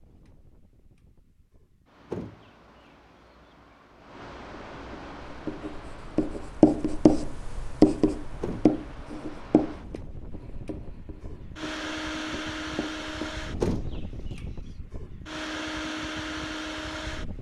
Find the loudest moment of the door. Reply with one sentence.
The loudest moment of the door is at 14 seconds.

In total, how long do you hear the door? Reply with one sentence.
The door can be heard for 2 seconds in total.